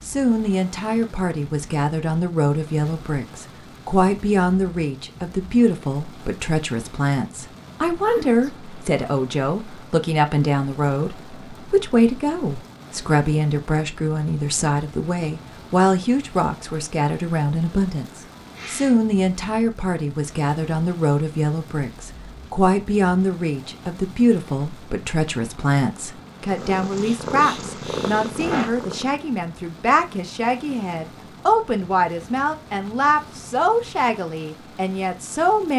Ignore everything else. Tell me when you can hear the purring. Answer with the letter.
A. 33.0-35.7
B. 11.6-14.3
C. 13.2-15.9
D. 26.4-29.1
D.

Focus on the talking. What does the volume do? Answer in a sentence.
The loudness of the talking stays about the same.